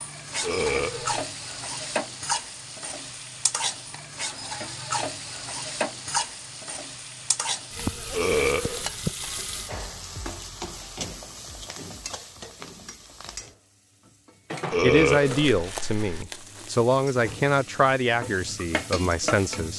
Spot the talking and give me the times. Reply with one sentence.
The talking can be heard from 14.8 to 19.7 s.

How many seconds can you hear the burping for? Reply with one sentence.
The burping can be heard for 3 seconds in total.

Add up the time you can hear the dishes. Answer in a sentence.
You can't hear the dishes here.